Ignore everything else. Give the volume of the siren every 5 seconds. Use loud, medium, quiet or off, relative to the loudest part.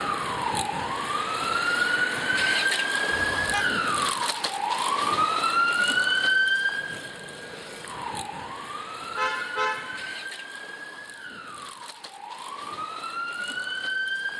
loud, loud, medium.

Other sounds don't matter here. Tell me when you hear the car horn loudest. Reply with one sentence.
The loudest moment of the car horn is at 10 seconds.